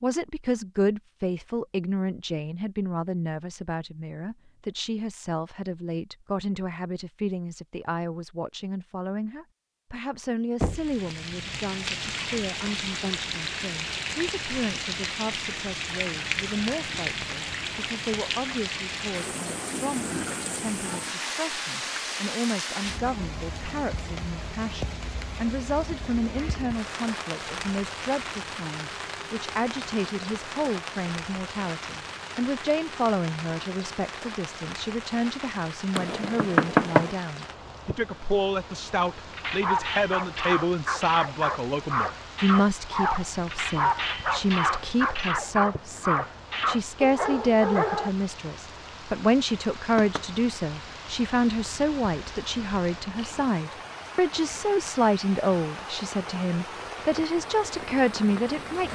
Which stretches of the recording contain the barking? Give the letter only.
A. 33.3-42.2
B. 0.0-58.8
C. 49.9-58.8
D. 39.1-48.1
D.